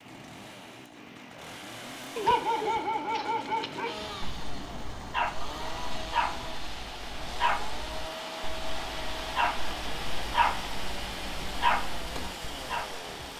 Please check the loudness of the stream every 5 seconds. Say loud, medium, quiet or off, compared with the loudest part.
medium, loud, loud.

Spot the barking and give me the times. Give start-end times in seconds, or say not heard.
2.1-13.1.